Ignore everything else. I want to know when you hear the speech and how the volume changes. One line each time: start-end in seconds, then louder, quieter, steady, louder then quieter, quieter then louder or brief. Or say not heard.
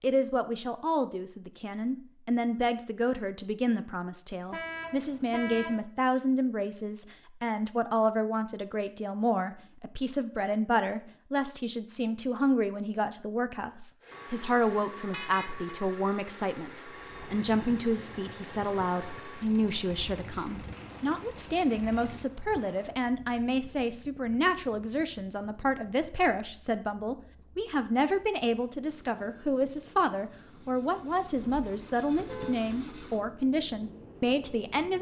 0.0-34.9 steady.